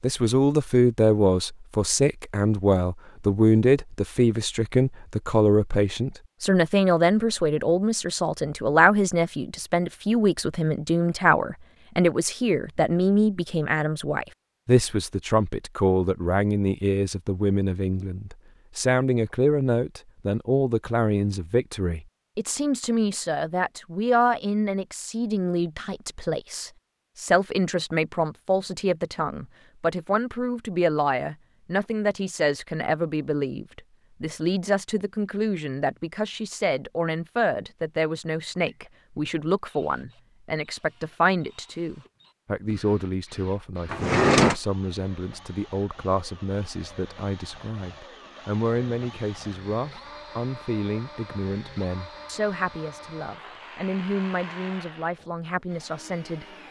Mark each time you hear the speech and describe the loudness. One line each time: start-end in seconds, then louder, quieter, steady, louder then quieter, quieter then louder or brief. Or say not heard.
0.0-56.5 quieter.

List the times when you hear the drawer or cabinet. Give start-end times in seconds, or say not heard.
43.9-44.5.